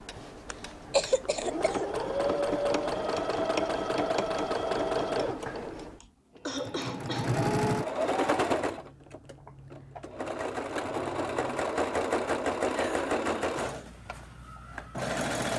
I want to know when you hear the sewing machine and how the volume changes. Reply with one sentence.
The sewing machine can be heard from 0.0 to 15.5 s, at a steady volume.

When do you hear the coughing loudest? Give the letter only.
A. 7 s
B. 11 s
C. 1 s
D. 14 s
C.